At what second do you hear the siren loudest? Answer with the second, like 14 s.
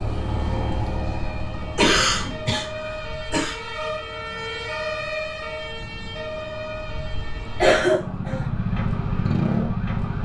5 s.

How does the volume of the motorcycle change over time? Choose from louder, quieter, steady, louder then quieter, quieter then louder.
quieter then louder.